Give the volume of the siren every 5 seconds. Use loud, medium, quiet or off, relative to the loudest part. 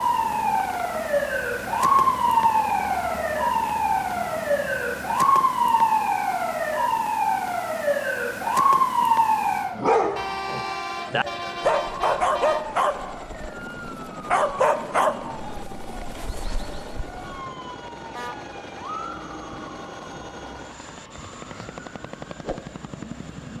loud, loud, quiet, quiet, quiet.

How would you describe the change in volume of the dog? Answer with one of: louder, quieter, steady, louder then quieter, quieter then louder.
quieter.